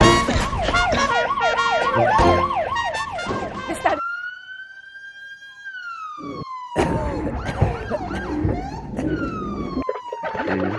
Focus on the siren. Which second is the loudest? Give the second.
2 s.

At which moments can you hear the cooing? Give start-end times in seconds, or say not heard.
6.2-10.7.